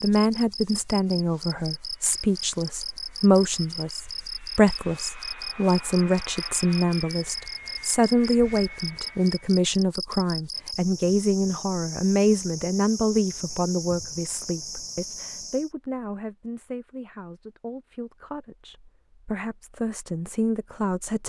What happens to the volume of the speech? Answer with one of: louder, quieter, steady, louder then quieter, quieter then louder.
quieter.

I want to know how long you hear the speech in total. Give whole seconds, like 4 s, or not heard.
21 s.